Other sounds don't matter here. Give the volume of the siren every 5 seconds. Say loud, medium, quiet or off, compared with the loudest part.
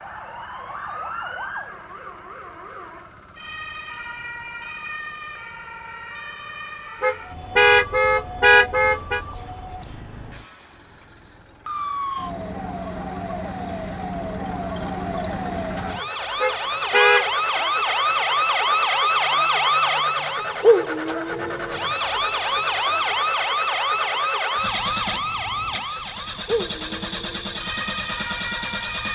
quiet, quiet, medium, loud, loud, medium.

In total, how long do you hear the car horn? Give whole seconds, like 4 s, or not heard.
3 s.